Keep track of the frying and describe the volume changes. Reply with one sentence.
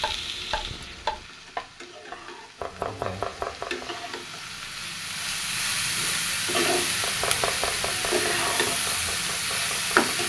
The volume of the frying goes up.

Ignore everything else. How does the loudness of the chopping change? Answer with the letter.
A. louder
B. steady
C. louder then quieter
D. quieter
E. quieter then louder
D.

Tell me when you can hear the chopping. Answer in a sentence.
You can hear the chopping from 0.0 to 3.9 s and from 6.8 to 10.2 s.